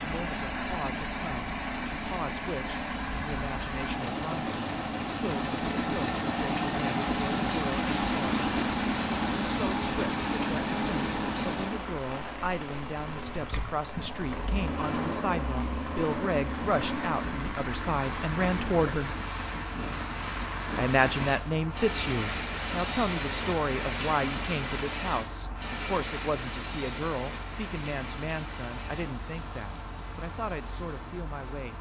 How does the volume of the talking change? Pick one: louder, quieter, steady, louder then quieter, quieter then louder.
louder then quieter.